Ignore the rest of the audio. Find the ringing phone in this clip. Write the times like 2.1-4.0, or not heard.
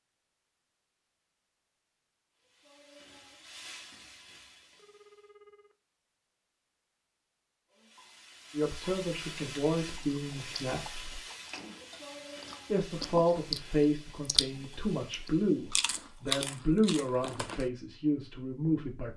4.8-5.8.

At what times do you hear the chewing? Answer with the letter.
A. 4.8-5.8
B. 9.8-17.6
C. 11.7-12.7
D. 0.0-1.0
B.